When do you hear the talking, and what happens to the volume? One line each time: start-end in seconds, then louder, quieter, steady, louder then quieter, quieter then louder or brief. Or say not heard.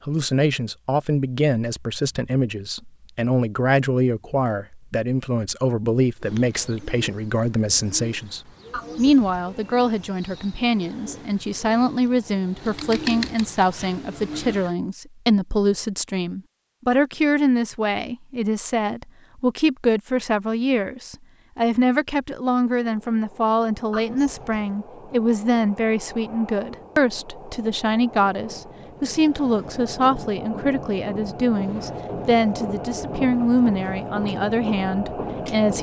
0.1-35.7 steady.